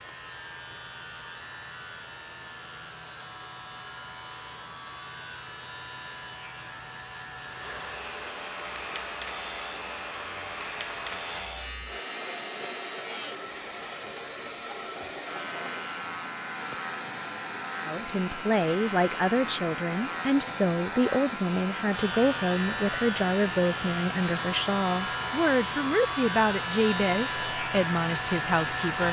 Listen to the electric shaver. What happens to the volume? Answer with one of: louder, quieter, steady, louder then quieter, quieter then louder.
louder.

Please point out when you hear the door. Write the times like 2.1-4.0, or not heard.
not heard.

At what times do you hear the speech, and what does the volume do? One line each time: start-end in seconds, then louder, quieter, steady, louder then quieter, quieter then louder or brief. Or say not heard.
17.8-29.0 steady.